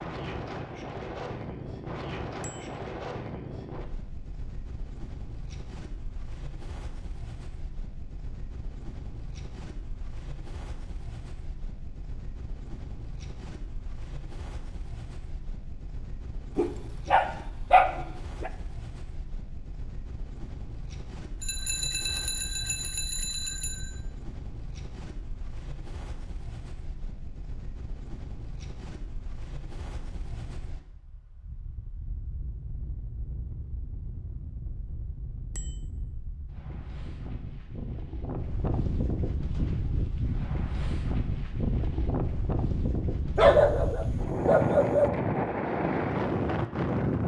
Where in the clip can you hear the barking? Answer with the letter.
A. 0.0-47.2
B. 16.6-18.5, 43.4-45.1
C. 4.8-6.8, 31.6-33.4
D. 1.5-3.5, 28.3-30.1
B.